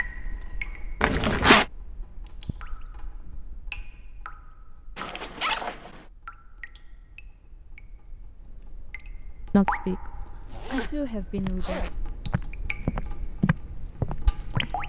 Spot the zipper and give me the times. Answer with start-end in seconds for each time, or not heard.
1.0-1.6, 5.0-6.0, 10.4-12.0.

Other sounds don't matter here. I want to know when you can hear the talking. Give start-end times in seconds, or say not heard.
9.5-11.9.